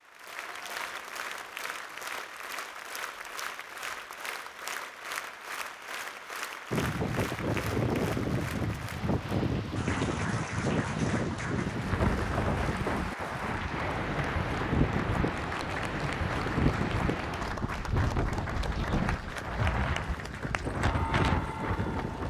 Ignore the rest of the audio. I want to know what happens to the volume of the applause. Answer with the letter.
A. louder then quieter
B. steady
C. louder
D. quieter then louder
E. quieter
B.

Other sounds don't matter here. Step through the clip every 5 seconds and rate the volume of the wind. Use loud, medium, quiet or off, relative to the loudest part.
off, loud, loud, loud, loud.